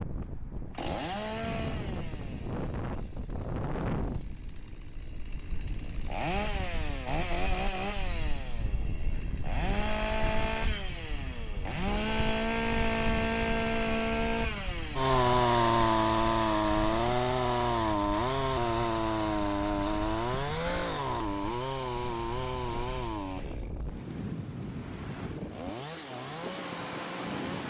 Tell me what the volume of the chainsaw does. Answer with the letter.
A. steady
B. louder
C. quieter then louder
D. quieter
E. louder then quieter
E.